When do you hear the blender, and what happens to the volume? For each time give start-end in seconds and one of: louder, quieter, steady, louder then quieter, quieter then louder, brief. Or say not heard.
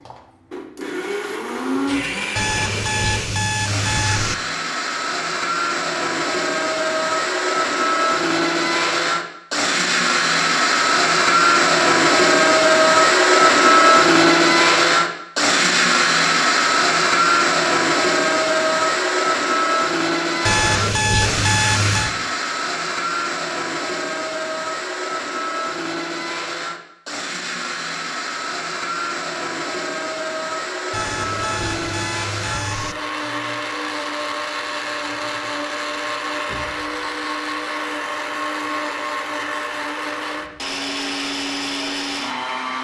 0.0-42.7 louder then quieter.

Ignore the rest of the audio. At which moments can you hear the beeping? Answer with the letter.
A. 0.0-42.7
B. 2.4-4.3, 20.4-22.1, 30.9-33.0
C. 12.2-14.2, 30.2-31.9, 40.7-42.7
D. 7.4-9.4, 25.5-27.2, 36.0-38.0
B.